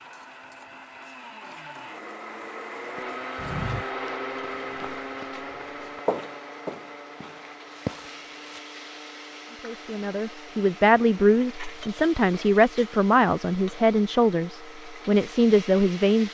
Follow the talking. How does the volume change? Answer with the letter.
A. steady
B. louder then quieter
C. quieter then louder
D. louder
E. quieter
A.